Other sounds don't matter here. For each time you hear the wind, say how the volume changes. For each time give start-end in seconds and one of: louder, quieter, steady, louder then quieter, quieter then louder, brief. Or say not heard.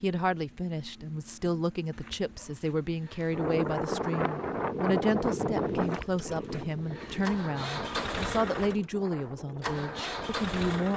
3.3-10.9 quieter.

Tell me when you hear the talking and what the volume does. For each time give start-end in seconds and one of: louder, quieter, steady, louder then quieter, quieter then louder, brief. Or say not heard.
0.0-10.9 steady.